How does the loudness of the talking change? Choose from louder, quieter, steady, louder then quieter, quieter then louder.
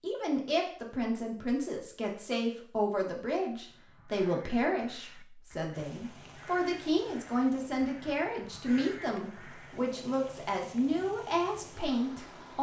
steady.